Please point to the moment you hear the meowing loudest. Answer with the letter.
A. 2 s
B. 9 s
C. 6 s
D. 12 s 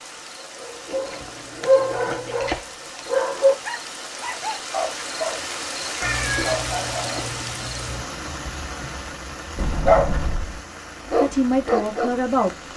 C.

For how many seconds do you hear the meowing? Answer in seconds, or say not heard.
2 s.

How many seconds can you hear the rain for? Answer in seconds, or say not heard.
13 s.